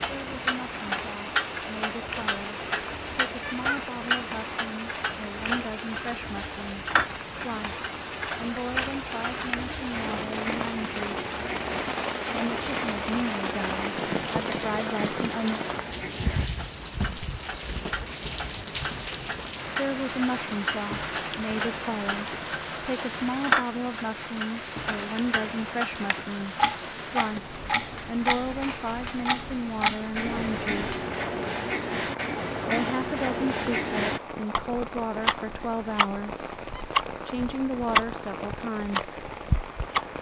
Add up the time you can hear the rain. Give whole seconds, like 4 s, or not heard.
40 s.